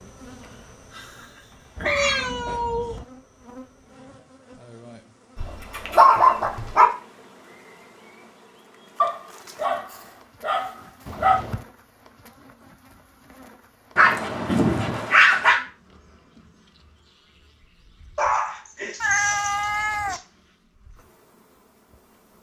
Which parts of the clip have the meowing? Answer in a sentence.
The meowing can be heard from 1.8 to 3.0 s, from 11.1 to 11.7 s and from 19.0 to 20.2 s.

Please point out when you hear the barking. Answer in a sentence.
You can hear the barking from 0.4 to 2.3 s, from 5.3 to 6.9 s, from 9.0 to 11.4 s, from 13.9 to 15.6 s and from 18.1 to 20.2 s.